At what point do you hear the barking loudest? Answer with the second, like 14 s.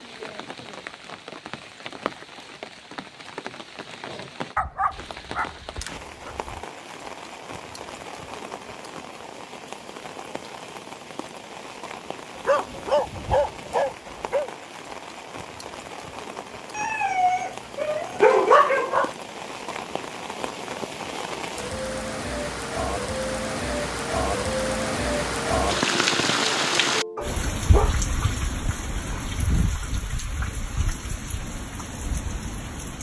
18 s.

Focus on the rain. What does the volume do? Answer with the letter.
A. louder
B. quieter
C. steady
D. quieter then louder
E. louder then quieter
A.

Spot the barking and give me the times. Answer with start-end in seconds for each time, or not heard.
4.5-6.6, 12.3-14.5, 16.8-19.1, 27.1-28.0.